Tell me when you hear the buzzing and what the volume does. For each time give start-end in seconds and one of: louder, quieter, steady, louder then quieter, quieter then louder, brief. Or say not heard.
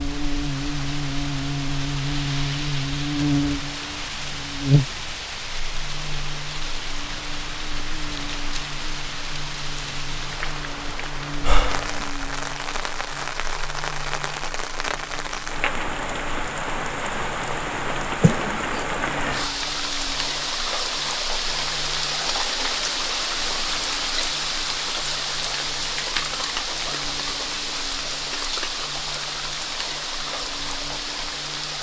0.0-31.7 quieter.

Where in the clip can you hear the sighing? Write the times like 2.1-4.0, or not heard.
11.4-12.1, 18.2-18.8.